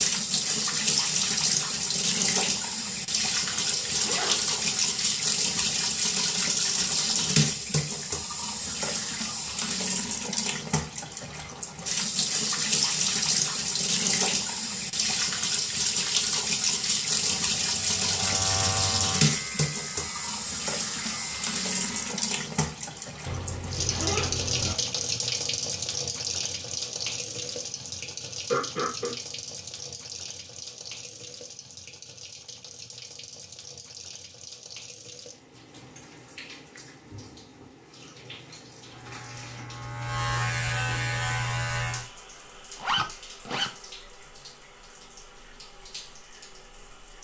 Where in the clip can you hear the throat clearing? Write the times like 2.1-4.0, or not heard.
28.5-29.1.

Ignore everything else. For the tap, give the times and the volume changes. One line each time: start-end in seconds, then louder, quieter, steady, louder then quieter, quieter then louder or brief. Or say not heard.
0.0-47.2 quieter.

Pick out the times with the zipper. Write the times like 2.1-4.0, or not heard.
3.5-4.8, 23.2-24.8, 42.8-43.7.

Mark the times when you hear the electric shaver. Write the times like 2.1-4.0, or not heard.
17.1-22.2, 38.9-42.1.